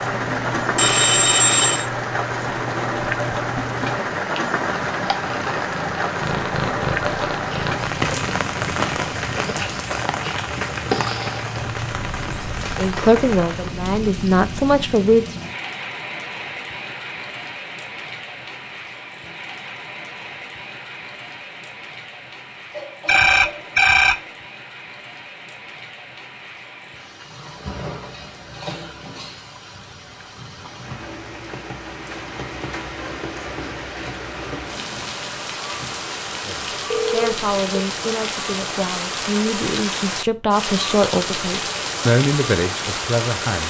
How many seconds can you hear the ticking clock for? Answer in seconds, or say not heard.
not heard.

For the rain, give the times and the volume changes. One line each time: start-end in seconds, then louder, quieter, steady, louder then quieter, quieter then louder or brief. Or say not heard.
0.0-43.6 quieter then louder.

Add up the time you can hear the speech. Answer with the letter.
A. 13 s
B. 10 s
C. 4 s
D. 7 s
B.